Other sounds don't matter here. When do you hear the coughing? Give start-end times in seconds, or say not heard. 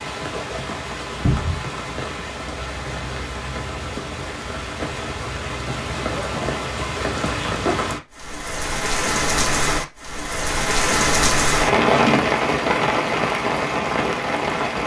not heard.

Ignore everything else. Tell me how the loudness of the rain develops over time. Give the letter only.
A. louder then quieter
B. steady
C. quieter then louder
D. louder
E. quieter
D.